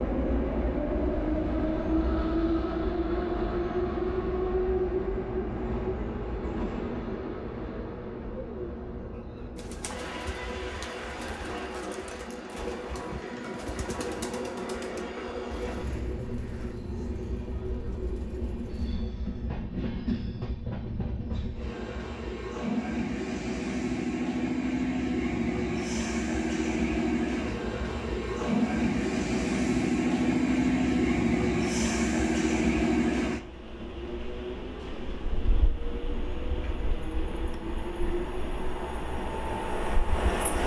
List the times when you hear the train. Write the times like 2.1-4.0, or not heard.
0.0-40.6.